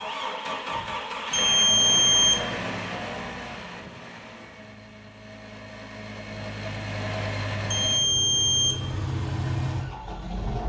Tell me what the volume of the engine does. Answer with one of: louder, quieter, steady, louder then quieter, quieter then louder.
quieter then louder.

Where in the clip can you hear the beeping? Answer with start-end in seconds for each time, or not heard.
1.3-2.5, 7.7-8.8.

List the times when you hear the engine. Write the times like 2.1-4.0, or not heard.
0.0-10.6.